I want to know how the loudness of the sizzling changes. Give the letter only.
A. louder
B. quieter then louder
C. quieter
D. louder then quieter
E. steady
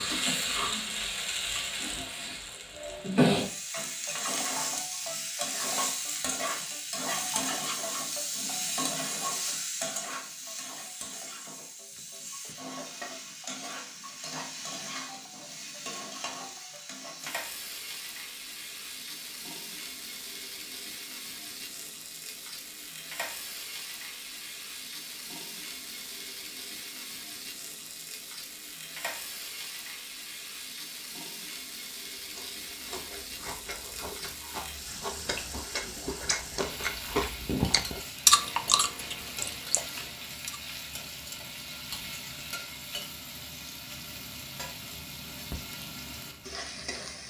C.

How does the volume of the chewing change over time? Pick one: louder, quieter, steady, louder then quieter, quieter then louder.
louder then quieter.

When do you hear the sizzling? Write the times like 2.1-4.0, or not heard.
0.0-47.2.